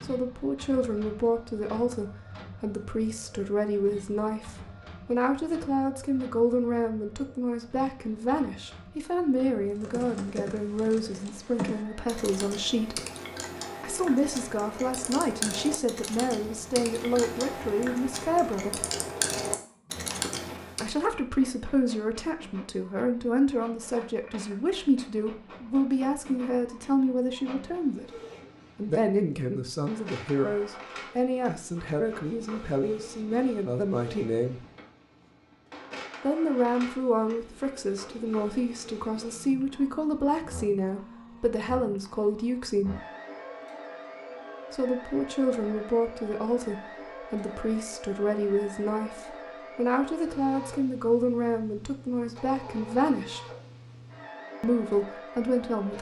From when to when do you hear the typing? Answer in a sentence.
You can hear the typing from 9.7 to 20.9 s.